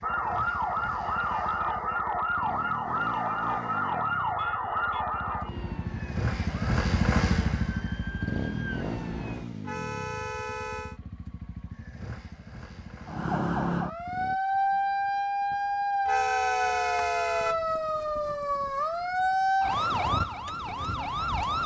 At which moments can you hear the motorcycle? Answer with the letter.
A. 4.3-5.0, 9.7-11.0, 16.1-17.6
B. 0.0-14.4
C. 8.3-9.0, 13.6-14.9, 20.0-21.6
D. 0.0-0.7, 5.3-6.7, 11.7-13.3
B.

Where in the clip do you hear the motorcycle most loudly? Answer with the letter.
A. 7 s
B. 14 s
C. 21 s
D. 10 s
A.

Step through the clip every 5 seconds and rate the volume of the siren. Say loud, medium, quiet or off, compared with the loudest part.
loud, medium, loud, loud, loud.